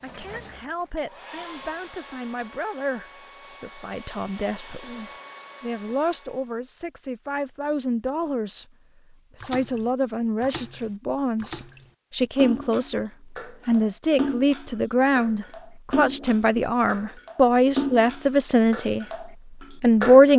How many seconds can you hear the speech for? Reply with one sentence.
The speech can be heard for 19 seconds in total.